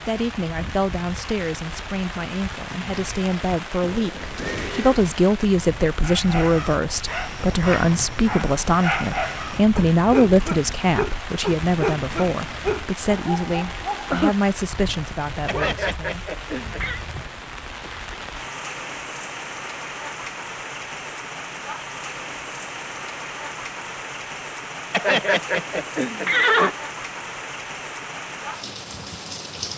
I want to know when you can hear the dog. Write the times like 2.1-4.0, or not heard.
6.0-15.8.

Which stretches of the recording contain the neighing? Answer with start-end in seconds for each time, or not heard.
3.8-5.0, 15.4-17.0, 24.9-26.8.